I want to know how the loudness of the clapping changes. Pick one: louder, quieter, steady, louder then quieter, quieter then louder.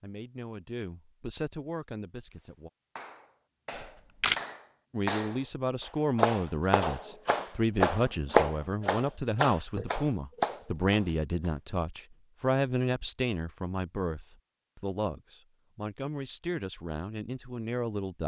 louder then quieter.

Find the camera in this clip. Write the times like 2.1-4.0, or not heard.
3.8-4.4.